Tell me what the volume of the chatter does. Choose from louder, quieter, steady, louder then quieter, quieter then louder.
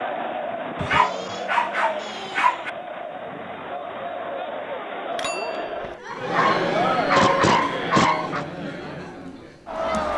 louder then quieter.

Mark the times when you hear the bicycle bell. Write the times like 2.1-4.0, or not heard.
5.1-6.0.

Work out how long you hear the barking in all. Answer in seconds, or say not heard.
4 s.